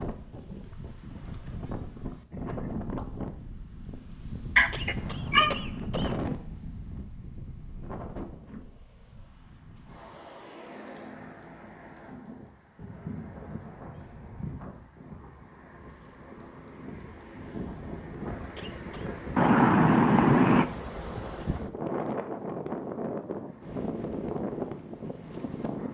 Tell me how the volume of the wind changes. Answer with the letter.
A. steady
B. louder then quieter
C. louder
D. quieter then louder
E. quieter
D.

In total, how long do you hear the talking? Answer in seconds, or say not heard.
not heard.